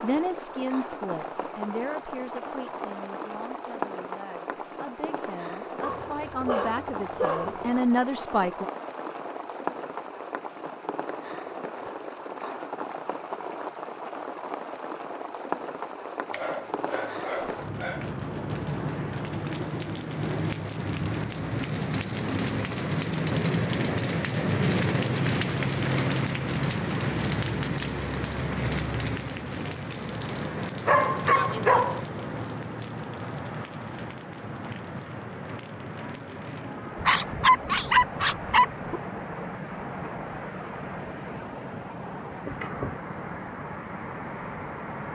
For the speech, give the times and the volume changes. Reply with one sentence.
The speech can be heard from 0.0 to 8.7 s, getting quieter then louder.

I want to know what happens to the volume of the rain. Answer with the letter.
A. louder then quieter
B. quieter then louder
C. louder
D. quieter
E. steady
A.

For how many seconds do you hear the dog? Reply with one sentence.
You can hear the dog for 7 seconds altogether.